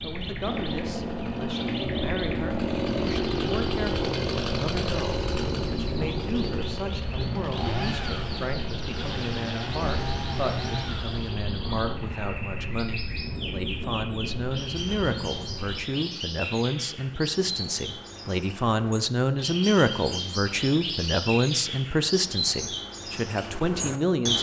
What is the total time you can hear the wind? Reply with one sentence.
You can hear the wind for 16 seconds altogether.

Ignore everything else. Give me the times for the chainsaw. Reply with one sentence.
The chainsaw can be heard from 0.4 to 11.4 s.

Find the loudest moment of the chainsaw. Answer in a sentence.
The loudest moment of the chainsaw is at 3 seconds.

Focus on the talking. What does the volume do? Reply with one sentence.
The loudness of the talking goes up.